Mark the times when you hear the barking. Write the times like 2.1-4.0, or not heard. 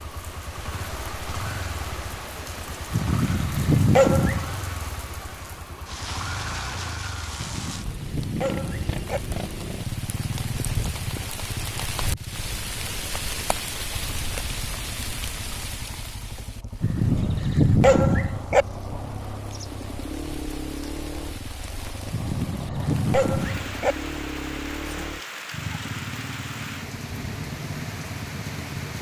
2.9-4.5, 7.3-9.2, 16.8-18.6, 22.1-23.9.